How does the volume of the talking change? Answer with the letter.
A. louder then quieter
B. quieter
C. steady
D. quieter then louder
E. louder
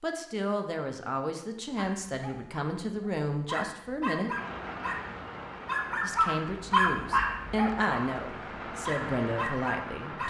C.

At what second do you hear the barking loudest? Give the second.
7 s.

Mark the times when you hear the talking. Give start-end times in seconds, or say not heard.
0.0-4.3, 6.0-10.2.